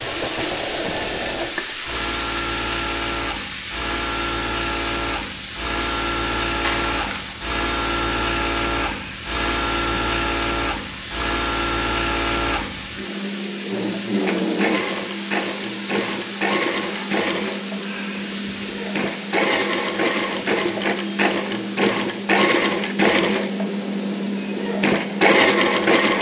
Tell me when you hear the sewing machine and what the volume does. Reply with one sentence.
You can hear the sewing machine from 0.0 to 26.1 s, getting louder.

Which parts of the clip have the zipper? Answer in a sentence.
You can't hear the zipper here.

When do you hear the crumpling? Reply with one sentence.
You can hear the crumpling from 6.6 to 7.2 s.